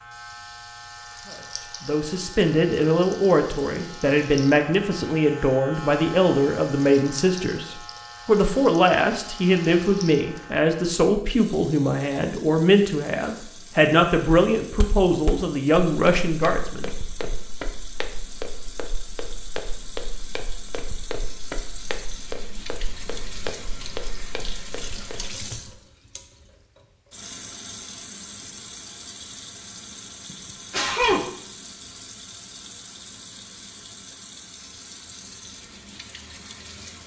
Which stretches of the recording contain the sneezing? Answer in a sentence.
You can hear the sneezing from 30.3 to 31.3 s.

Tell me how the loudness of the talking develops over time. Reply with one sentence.
The loudness of the talking stays about the same.